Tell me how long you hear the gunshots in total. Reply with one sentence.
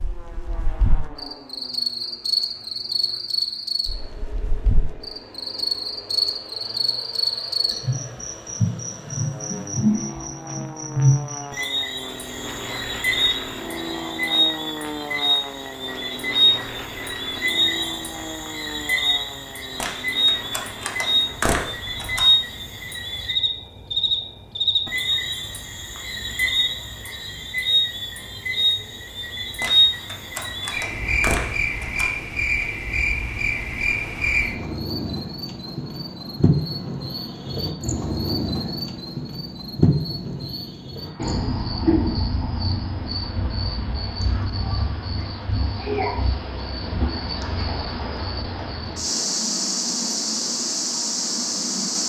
You can hear the gunshots for 5 seconds altogether.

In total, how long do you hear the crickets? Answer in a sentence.
The crickets can be heard for 52 seconds in total.